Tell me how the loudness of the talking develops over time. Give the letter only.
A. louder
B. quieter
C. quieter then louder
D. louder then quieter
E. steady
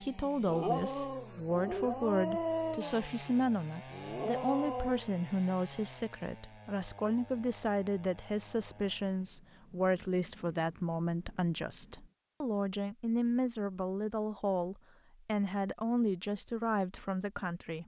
E.